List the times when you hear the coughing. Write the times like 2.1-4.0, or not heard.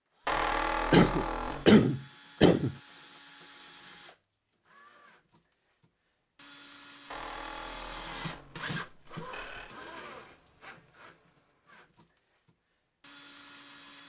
0.9-2.8.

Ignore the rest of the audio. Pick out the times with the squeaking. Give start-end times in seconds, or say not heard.
0.2-1.6, 7.1-9.8.